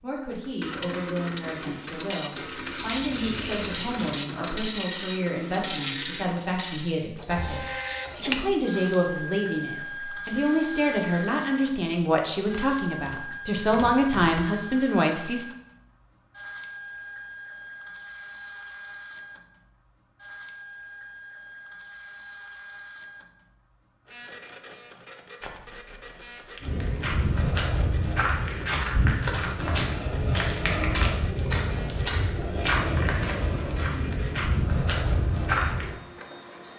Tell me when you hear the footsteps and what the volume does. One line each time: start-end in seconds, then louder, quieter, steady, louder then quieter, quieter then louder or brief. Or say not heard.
26.6-36.0 steady.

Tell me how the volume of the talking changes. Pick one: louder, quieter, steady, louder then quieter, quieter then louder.
louder.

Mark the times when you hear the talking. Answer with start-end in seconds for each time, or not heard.
0.0-15.4.